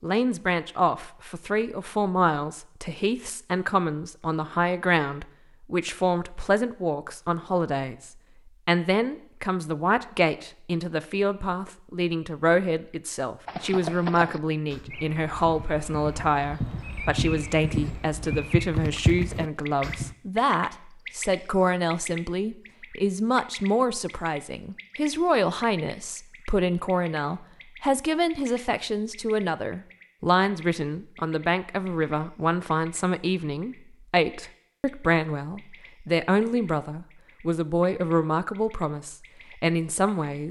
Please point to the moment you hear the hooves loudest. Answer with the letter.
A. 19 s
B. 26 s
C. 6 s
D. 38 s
A.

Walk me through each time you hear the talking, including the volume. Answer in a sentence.
You can hear the talking from 0.0 to 40.4 s, at a steady volume.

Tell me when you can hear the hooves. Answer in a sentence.
The hooves can be heard from 13.4 to 20.1 s.